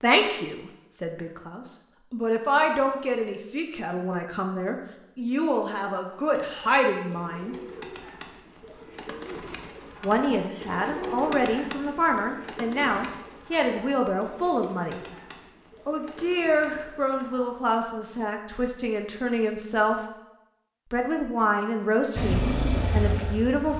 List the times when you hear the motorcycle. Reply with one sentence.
You can hear the motorcycle from 22.1 to 23.7 s.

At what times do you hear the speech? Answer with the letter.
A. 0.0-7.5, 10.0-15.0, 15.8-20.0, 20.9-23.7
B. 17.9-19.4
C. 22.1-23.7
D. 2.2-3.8
A.